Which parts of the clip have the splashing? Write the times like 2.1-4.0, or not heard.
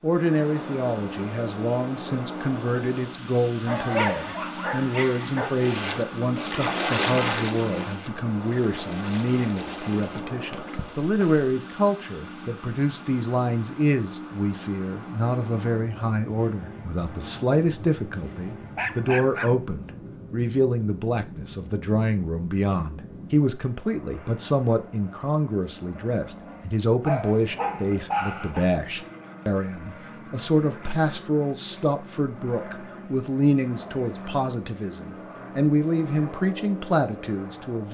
5.5-11.4.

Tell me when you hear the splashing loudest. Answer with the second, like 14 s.
7 s.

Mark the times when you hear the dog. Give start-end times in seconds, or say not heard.
3.6-5.6, 18.1-19.9, 27.1-28.6.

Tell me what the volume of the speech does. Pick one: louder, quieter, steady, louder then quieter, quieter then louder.
steady.